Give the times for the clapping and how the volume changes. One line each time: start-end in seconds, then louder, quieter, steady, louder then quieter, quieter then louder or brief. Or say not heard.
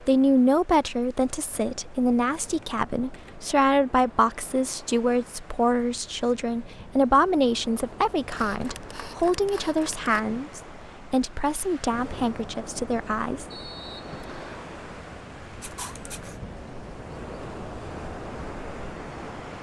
not heard.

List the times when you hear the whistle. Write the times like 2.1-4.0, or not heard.
13.5-14.6.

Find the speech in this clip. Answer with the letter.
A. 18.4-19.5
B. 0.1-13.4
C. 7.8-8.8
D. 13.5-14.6
B.